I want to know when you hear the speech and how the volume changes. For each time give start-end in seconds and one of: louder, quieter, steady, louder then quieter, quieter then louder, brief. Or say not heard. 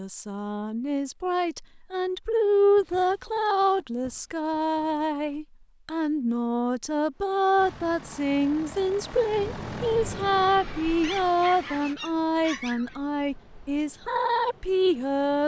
0.0-15.4 steady.